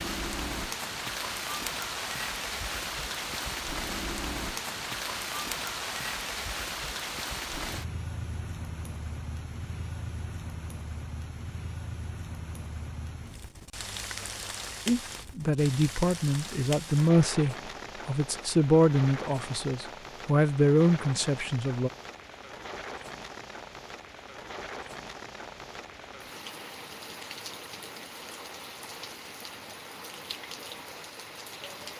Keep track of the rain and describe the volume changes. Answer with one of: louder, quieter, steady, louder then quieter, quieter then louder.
quieter.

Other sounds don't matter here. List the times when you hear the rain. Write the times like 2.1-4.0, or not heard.
0.0-31.9.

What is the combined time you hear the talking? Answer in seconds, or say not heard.
7 s.